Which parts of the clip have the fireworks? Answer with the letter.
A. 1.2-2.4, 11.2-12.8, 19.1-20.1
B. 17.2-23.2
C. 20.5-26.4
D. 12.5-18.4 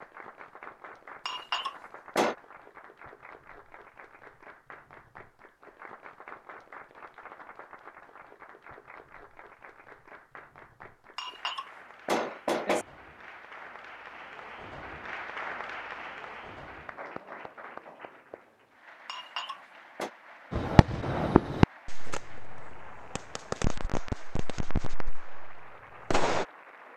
C.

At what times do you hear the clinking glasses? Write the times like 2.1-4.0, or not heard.
1.2-2.4, 11.2-12.8, 19.1-20.1.